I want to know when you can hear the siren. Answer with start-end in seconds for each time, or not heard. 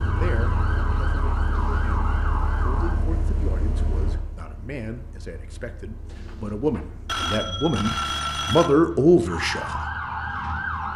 0.0-3.0, 9.2-10.9.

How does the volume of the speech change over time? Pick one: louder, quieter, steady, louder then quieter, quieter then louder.
louder.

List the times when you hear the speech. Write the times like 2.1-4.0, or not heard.
0.0-9.9.